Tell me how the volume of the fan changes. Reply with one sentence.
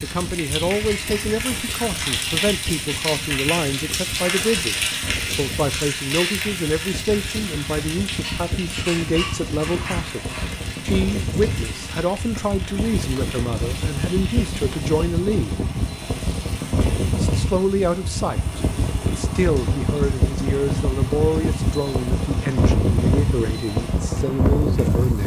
The volume of the fan goes up.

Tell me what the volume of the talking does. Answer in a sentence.
The volume of the talking stays about the same.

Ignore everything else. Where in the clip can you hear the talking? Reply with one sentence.
You can hear the talking from 0.0 to 10.2 s, from 10.8 to 15.6 s and from 17.1 to 25.2 s.